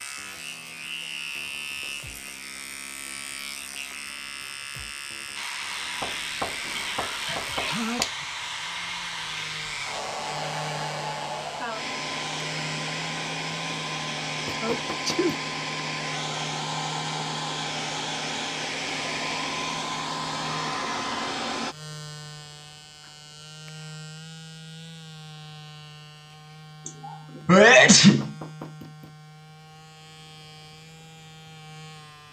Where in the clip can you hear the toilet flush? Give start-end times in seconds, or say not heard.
not heard.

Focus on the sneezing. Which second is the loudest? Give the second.
28 s.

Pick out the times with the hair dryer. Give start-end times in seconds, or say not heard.
5.3-21.8.